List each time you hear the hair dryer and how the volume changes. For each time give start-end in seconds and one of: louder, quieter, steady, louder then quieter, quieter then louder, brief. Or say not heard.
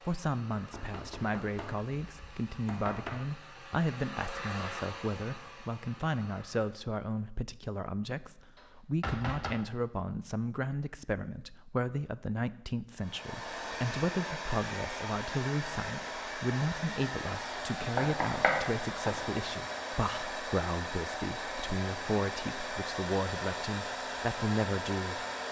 0.0-6.8 louder then quieter
13.0-25.4 steady.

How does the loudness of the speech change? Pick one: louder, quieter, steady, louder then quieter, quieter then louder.
steady.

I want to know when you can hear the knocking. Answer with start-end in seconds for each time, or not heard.
0.6-3.2, 8.6-9.6, 17.9-19.1.